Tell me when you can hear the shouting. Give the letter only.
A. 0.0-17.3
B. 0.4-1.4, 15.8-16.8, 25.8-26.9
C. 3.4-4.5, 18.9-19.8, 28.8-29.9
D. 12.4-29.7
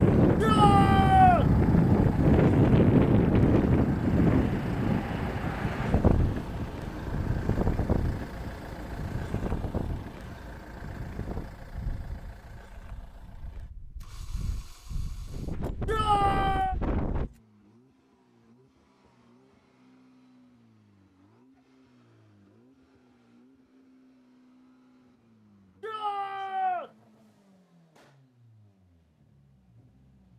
B.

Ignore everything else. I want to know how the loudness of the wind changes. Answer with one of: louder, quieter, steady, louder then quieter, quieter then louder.
quieter then louder.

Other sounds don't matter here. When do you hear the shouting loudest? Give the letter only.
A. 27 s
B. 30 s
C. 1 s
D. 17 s
C.